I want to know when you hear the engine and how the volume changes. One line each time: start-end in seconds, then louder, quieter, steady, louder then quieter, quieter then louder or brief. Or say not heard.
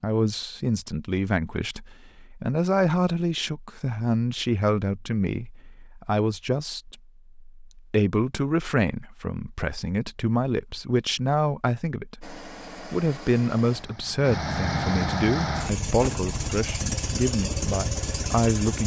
12.2-18.8 louder.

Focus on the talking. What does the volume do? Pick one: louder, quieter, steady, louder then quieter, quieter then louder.
steady.